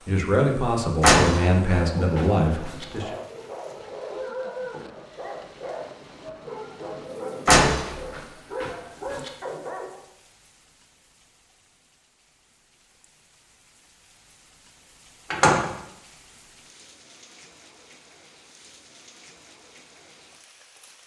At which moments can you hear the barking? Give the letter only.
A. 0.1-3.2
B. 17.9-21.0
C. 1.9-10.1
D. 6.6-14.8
C.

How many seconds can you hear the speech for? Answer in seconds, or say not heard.
3 s.